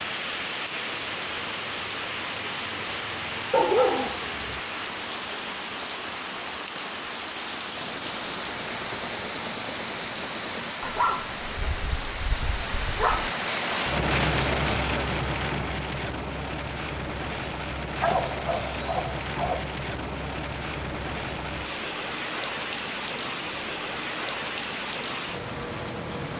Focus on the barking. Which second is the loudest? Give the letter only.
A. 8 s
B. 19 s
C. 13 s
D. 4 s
D.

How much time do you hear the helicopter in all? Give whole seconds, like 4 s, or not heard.
3 s.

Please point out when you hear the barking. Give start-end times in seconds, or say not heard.
3.5-4.6, 10.8-13.3, 18.0-19.7.